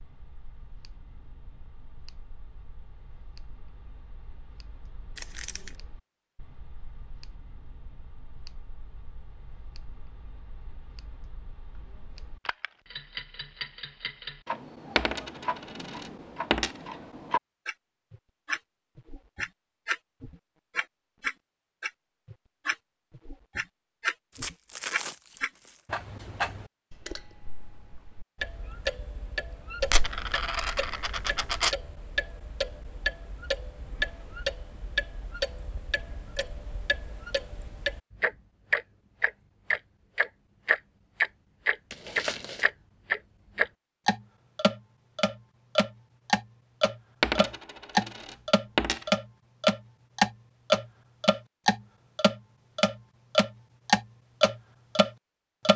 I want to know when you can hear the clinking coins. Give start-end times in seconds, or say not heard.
14.9-16.8, 29.8-31.8, 47.2-49.0.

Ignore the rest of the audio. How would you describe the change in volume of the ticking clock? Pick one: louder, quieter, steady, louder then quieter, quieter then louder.
louder.